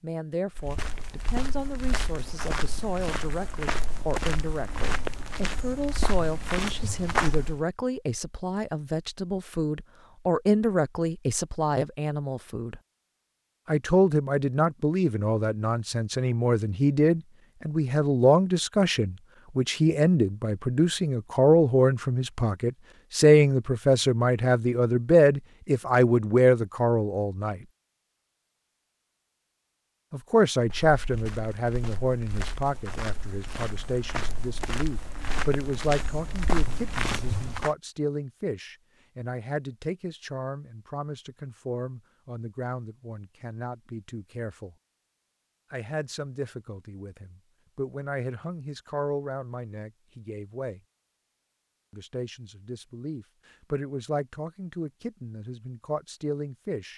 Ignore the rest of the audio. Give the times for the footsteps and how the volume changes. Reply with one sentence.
The footsteps can be heard from 0.6 to 7.7 s, getting louder; and from 30.6 to 37.7 s, getting louder.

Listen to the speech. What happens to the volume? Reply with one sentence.
The loudness of the speech goes up, then down.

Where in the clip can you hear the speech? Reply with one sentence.
You can hear the speech from 0.0 to 12.8 s, from 13.7 to 27.6 s, from 30.1 to 44.8 s, from 45.7 to 50.8 s and from 51.9 to 56.9 s.